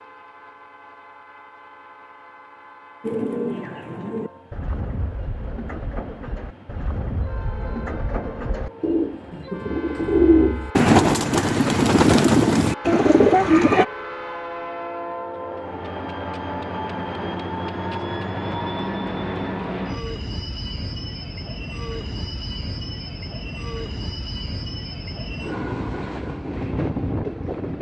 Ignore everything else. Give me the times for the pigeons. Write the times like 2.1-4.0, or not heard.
3.0-13.8.